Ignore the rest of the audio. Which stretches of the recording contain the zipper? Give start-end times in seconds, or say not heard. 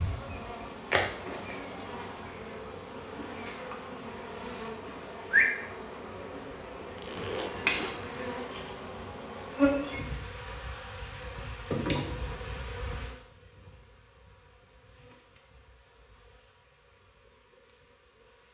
6.8-8.1.